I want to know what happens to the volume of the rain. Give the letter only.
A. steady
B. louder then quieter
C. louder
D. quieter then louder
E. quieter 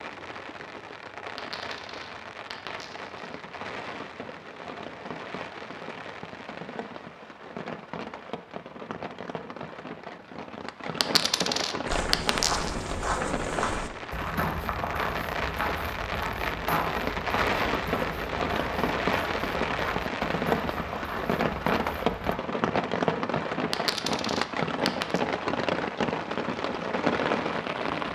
C.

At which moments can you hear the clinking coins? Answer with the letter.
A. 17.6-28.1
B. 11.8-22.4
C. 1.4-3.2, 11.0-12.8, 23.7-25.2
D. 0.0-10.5
C.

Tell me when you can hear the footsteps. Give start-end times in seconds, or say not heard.
11.8-22.4.